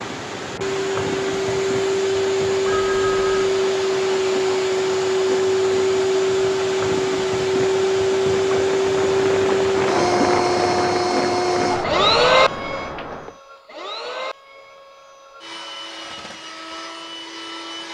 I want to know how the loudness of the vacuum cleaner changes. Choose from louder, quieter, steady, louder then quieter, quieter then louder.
quieter.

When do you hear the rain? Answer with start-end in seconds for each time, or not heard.
0.0-13.4.